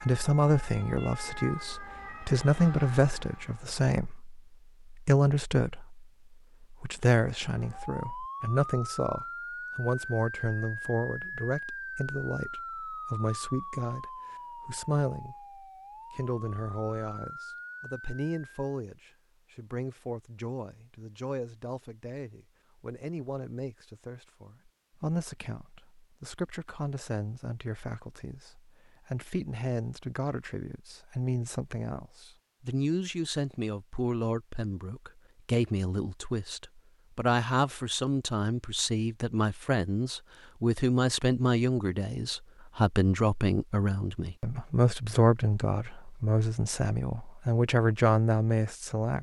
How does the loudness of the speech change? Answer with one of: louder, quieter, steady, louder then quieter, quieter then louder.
quieter then louder.